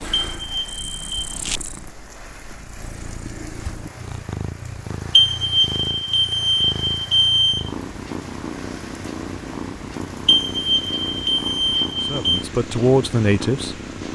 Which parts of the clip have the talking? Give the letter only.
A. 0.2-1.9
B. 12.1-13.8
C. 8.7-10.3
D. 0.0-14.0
B.